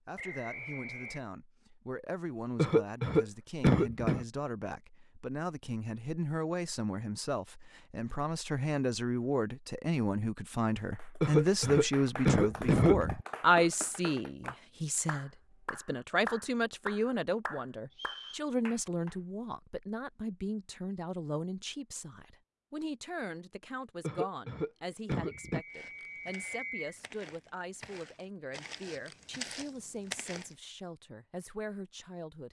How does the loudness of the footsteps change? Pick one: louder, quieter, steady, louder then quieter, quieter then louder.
louder.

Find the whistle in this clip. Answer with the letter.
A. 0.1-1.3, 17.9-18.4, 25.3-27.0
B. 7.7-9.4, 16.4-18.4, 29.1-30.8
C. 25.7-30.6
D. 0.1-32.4
A.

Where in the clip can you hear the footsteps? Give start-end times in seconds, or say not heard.
25.7-30.6.